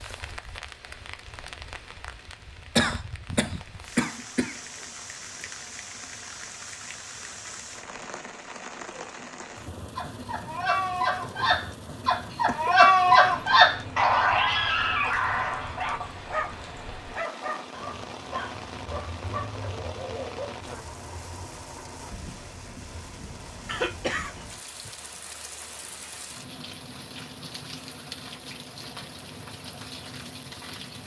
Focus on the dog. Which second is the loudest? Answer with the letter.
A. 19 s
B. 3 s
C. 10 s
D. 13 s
D.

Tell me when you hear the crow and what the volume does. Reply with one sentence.
The crow can't be heard in this clip.